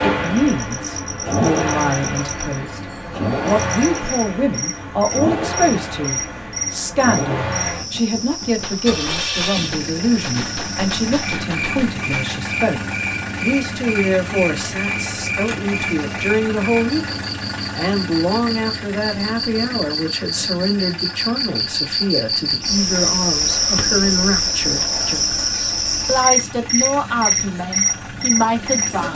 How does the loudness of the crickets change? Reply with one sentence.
The loudness of the crickets goes up.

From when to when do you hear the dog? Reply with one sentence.
You can't hear the dog here.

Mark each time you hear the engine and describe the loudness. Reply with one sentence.
The engine can be heard from 0.0 to 29.1 s, getting quieter.